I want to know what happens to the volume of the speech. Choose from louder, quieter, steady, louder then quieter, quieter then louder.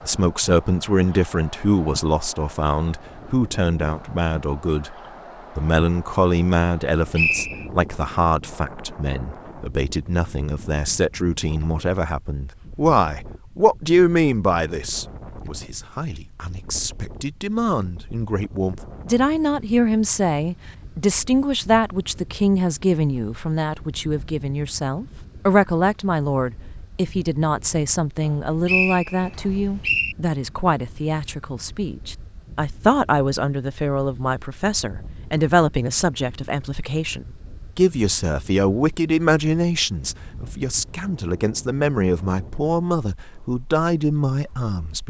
steady.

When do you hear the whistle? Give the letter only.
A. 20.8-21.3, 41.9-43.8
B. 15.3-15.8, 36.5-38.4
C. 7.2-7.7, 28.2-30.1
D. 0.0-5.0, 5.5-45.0
C.